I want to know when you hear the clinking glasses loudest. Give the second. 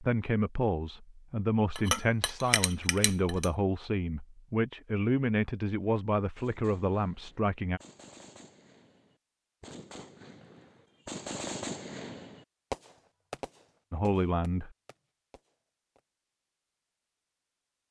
2 s.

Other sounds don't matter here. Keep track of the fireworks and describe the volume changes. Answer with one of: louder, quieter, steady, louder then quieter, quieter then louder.
louder then quieter.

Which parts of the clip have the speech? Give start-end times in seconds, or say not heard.
0.0-7.8, 13.9-14.7.